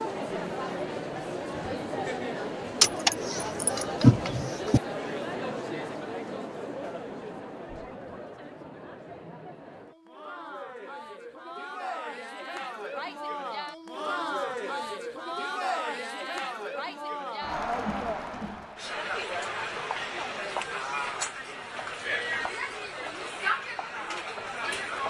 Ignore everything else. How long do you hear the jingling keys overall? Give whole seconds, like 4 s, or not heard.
2 s.